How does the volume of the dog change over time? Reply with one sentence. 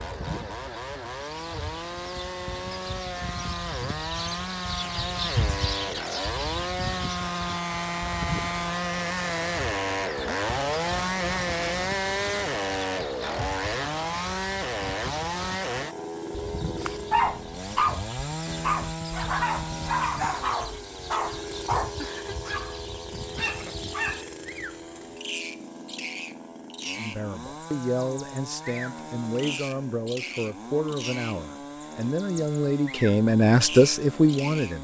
The volume of the dog goes down.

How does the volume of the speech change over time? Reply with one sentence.
The volume of the speech goes up.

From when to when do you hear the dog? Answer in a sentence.
The dog can be heard from 16.8 to 25.1 s.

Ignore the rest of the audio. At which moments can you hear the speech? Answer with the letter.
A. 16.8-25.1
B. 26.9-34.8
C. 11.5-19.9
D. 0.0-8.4
B.